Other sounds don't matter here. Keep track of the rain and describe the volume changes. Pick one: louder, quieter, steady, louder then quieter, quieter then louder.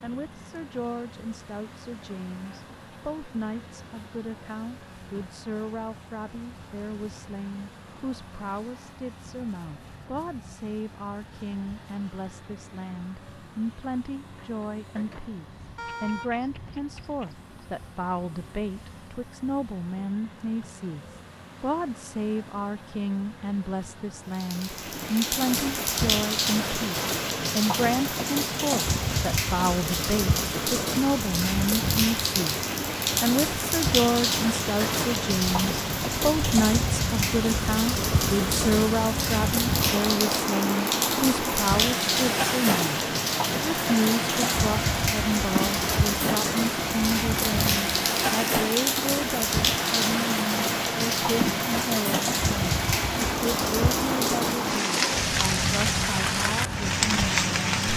steady.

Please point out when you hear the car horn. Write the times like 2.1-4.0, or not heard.
15.8-17.5.